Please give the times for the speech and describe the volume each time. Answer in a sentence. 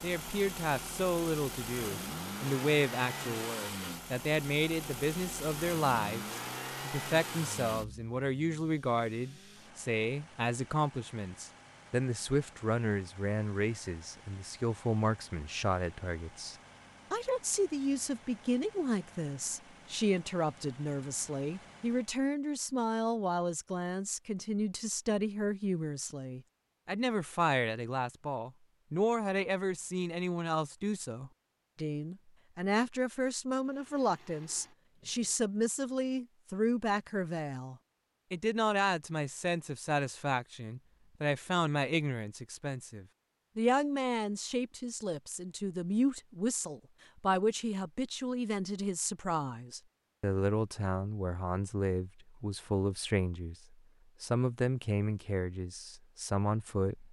You can hear the speech from 0.0 to 57.0 s, at a steady volume.